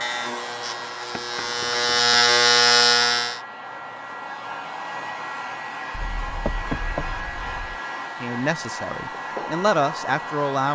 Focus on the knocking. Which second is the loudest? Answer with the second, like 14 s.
7 s.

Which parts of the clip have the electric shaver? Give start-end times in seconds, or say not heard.
0.0-3.4.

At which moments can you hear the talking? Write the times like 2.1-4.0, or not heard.
8.2-10.6.